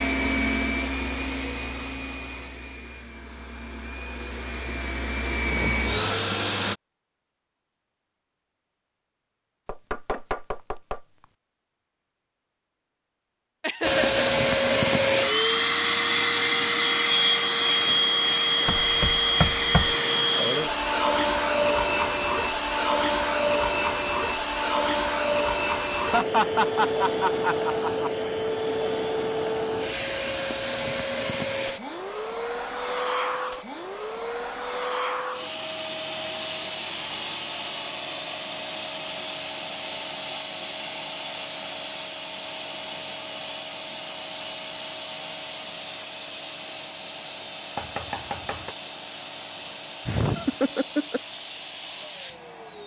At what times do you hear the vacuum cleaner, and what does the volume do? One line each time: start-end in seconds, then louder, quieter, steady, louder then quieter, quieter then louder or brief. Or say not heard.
0.0-6.8 quieter then louder
13.8-52.8 quieter.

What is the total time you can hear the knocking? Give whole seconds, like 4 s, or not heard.
4 s.